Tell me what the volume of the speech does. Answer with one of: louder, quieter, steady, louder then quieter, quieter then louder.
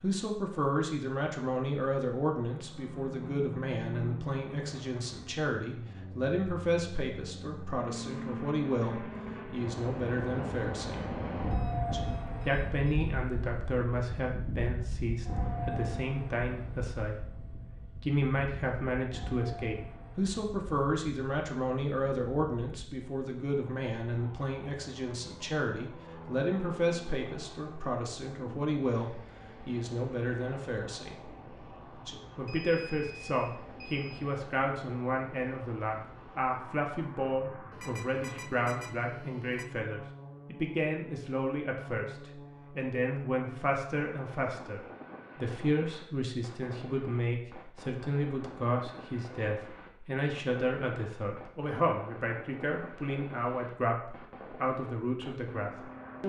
steady.